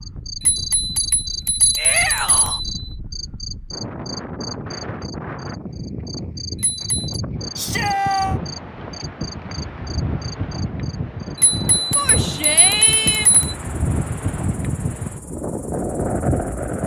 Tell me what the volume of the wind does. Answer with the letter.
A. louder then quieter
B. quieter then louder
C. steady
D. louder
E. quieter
D.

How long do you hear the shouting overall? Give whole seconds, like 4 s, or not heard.
3 s.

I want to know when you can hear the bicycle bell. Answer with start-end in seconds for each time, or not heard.
0.4-2.7, 6.5-7.2, 11.3-13.6.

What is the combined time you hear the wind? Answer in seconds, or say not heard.
17 s.